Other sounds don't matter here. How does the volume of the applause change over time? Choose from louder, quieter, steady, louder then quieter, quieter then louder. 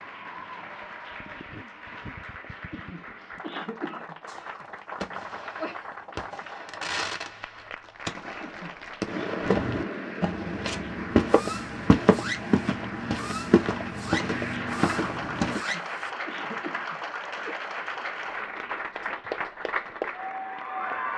louder.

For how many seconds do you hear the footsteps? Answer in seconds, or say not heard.
6 s.